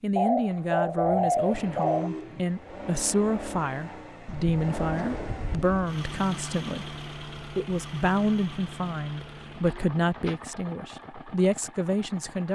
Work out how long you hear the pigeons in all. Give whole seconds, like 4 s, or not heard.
5 s.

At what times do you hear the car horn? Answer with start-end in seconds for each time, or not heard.
1.5-2.5.